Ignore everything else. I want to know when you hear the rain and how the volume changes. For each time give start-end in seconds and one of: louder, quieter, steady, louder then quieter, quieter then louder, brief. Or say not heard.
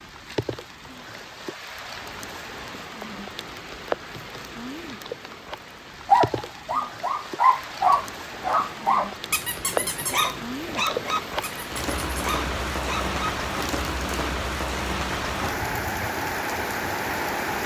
0.0-17.6 louder.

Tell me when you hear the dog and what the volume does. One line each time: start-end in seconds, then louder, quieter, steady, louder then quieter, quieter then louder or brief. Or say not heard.
6.0-13.3 quieter.